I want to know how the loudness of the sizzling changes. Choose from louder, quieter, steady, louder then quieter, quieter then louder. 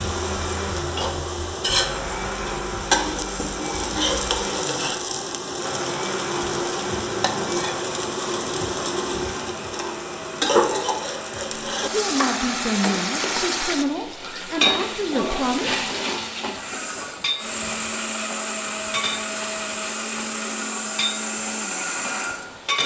quieter.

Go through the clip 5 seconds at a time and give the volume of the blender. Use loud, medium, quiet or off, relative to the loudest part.
medium, medium, medium, loud, loud.